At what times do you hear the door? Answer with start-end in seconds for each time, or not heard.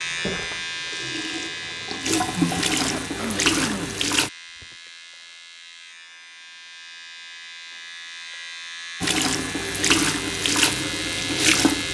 not heard.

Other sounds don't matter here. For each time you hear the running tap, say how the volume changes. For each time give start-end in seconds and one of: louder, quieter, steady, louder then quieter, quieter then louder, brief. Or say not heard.
0.0-4.3 louder
9.0-11.8 brief.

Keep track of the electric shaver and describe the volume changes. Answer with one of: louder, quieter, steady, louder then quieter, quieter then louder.
quieter then louder.